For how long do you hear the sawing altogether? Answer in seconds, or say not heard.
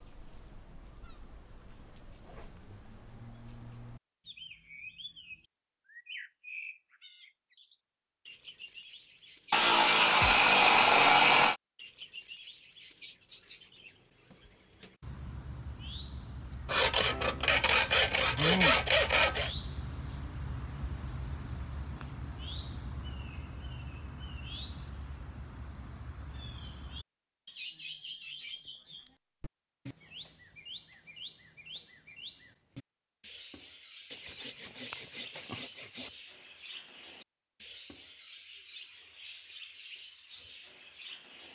7 s.